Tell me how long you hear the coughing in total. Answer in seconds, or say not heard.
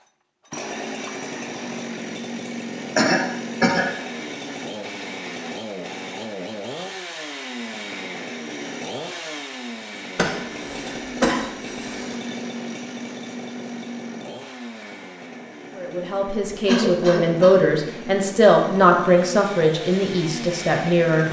4 s.